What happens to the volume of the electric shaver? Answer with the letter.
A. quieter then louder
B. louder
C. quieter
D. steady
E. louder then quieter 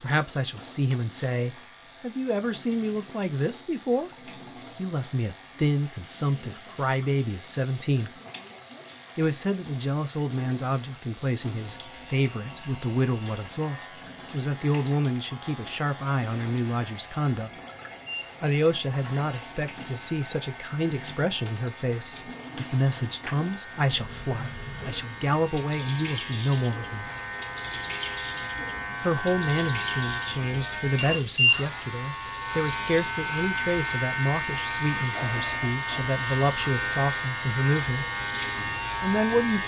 B.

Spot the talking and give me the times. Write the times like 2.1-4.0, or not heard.
0.0-8.1, 9.2-17.5, 18.4-27.1, 29.0-38.0, 39.0-39.6.